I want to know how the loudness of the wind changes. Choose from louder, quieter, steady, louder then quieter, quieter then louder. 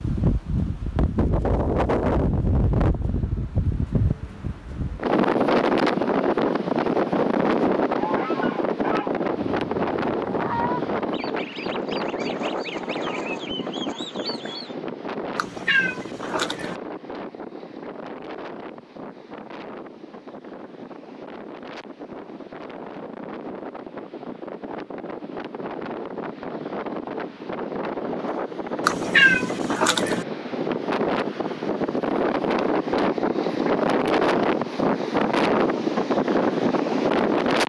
quieter then louder.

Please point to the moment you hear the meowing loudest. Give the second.
29 s.